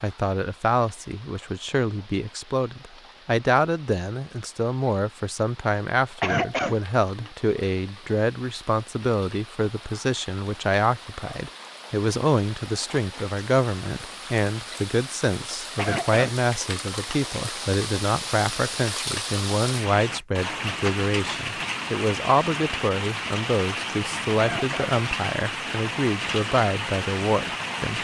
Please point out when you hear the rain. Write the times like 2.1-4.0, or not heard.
0.0-28.0.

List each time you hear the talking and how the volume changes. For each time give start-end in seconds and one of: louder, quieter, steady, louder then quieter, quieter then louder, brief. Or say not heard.
0.0-28.0 steady.